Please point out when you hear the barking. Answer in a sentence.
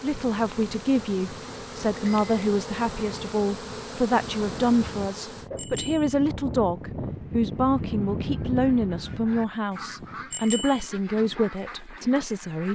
You can't hear the barking here.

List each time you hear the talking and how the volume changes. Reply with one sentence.
You can hear the talking from 0.0 to 12.7 s, at a steady volume.